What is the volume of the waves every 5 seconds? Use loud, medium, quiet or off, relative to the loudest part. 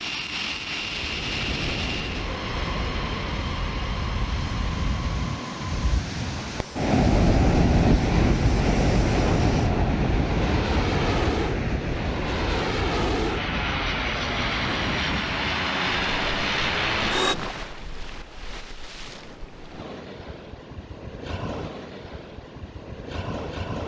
medium, loud, medium, quiet, quiet.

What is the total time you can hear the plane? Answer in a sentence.
The plane can be heard for 17 seconds in total.